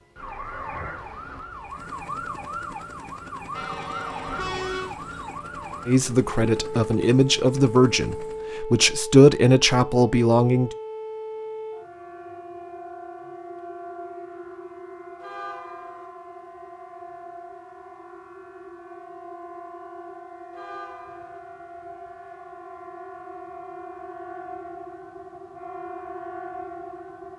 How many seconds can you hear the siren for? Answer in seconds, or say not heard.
27 s.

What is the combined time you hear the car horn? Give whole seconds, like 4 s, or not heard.
3 s.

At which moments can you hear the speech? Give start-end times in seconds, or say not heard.
5.8-10.7.